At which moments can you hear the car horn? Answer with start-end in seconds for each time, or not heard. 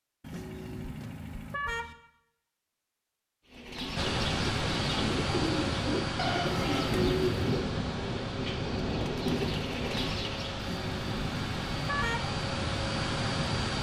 0.2-1.9, 6.5-7.5, 10.6-12.3.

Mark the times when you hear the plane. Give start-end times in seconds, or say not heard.
4.0-13.7.